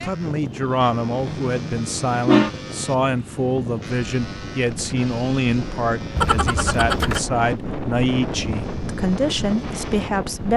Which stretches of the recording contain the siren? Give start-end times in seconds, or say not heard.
not heard.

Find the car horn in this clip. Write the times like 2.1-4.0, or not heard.
1.2-2.5, 6.2-7.2.